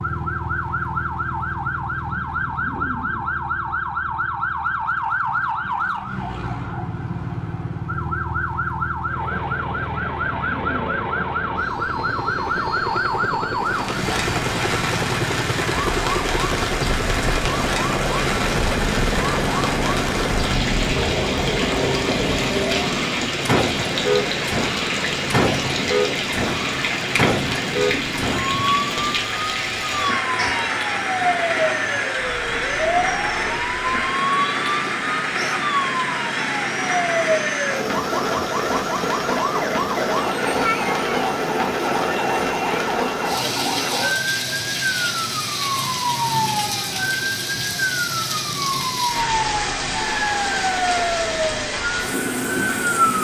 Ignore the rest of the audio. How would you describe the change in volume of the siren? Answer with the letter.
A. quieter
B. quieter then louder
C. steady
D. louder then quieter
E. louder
C.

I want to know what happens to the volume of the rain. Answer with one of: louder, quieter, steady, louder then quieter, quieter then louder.
steady.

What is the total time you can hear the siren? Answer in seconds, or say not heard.
53 s.